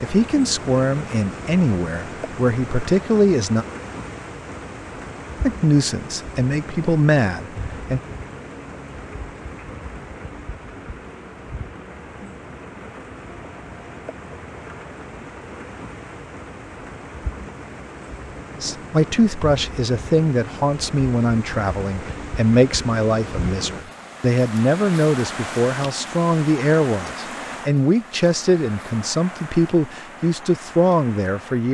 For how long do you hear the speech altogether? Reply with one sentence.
The speech can be heard for 19 seconds in total.